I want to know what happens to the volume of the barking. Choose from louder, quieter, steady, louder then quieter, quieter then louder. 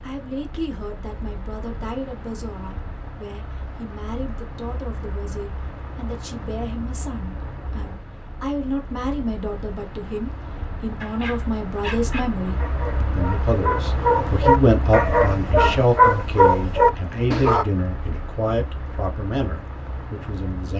louder.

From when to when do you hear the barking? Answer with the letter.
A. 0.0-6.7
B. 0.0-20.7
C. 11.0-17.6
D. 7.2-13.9
C.